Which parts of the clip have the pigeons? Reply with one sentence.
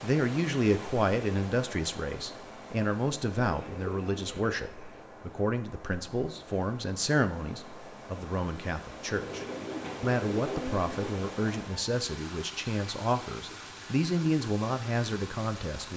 You can hear the pigeons from 3.5 to 5.0 s and from 9.1 to 11.1 s.